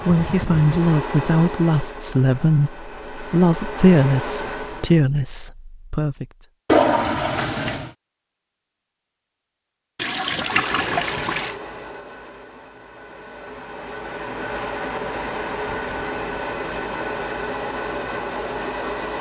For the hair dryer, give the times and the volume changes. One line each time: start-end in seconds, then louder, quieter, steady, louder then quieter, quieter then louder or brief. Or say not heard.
0.0-5.0 quieter then louder
10.3-19.1 quieter then louder.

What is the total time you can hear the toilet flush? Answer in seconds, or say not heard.
3 s.